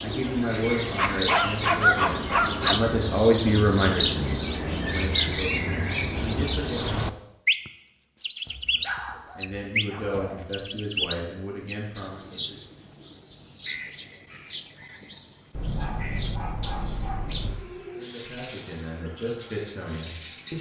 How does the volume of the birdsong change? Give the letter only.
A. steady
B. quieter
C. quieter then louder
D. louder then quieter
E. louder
B.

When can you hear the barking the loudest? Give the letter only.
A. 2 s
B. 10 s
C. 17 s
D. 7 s
A.